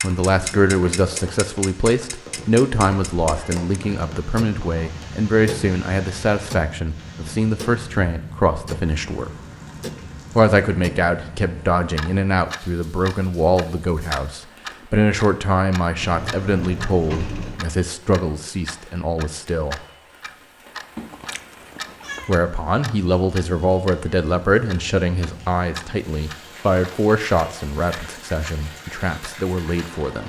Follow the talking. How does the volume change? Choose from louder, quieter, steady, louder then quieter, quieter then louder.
steady.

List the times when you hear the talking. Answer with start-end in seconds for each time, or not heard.
0.0-9.3, 10.3-19.8, 22.2-30.2.